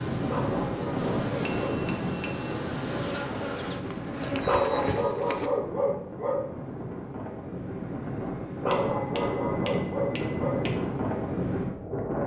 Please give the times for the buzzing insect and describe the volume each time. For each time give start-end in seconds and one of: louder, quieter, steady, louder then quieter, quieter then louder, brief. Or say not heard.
0.0-5.5 louder.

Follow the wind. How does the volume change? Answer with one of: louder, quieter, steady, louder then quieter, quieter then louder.
quieter then louder.